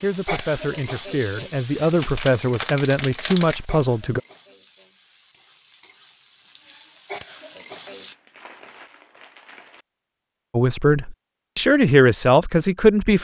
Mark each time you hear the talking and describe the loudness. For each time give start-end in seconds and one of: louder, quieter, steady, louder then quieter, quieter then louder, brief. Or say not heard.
0.0-4.2 louder
10.5-13.1 brief.